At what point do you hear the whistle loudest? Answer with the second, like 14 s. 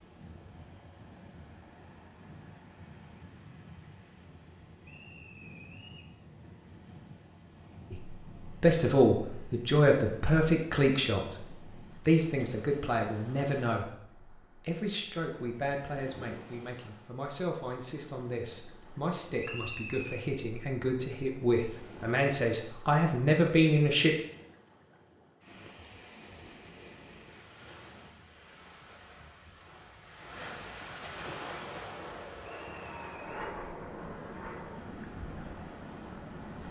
20 s.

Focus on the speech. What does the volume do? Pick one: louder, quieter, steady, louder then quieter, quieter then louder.
quieter then louder.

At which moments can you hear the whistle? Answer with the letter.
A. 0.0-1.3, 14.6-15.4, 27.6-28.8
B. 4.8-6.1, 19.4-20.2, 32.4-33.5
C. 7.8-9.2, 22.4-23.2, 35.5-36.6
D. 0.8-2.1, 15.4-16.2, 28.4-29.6
B.